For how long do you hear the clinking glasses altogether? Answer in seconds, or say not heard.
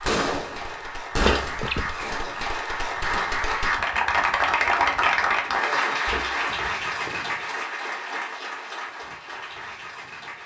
2 s.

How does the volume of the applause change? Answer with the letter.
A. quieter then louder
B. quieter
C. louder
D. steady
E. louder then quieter
E.